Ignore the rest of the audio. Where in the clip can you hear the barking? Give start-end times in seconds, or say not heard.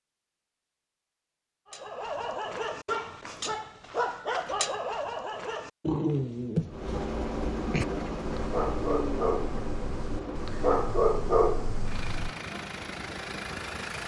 1.7-12.3.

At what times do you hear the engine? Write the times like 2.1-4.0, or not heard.
6.7-14.0.